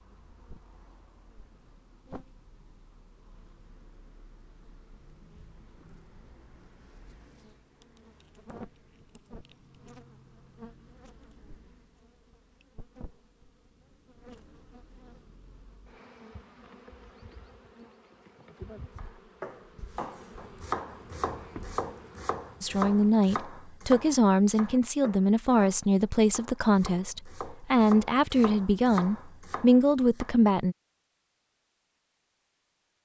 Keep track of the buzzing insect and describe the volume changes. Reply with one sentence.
The volume of the buzzing insect goes up.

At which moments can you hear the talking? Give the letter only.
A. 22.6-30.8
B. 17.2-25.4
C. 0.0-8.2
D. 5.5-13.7
A.